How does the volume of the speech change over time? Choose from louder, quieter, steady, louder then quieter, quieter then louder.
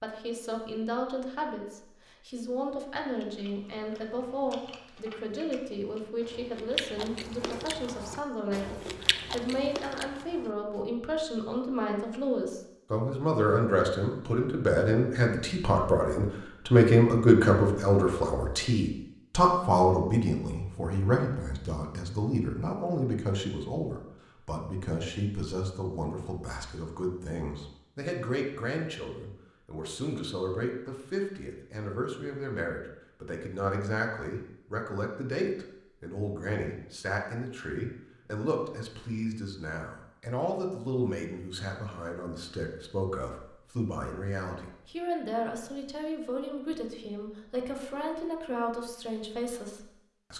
louder then quieter.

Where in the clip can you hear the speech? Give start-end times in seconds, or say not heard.
0.0-50.3.